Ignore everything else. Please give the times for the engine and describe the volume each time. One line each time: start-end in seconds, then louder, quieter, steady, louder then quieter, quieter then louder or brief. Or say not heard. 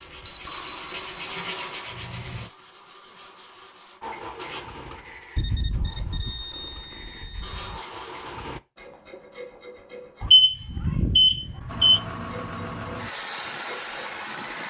0.1-2.5 brief
4.0-8.6 quieter then louder
11.7-14.6 brief.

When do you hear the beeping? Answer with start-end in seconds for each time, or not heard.
0.2-1.4, 5.3-7.8, 10.2-12.0.